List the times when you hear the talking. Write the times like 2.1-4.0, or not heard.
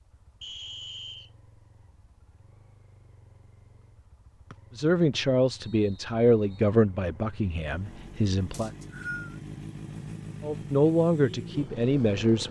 4.8-8.7, 10.4-12.4.